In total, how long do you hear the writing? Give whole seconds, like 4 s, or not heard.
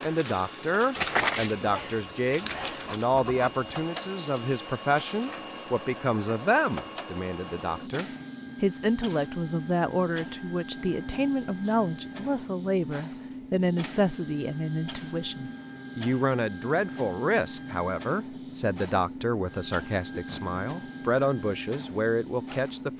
3 s.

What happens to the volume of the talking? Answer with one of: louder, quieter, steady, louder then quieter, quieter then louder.
steady.